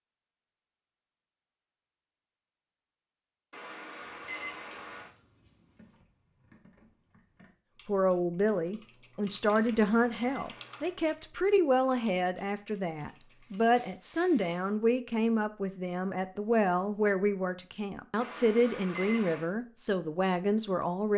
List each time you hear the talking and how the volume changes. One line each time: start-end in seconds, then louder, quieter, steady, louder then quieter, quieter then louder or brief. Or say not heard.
7.8-21.1 steady.